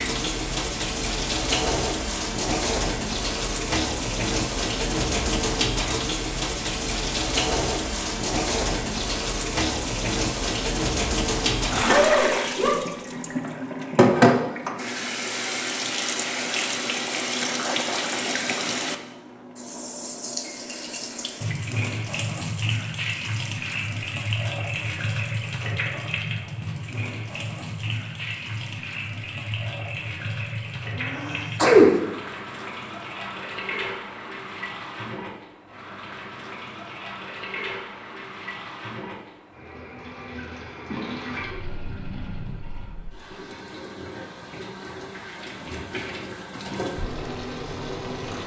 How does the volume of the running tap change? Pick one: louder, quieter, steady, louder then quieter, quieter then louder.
quieter.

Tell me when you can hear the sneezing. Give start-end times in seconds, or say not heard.
11.6-13.3, 31.1-31.9.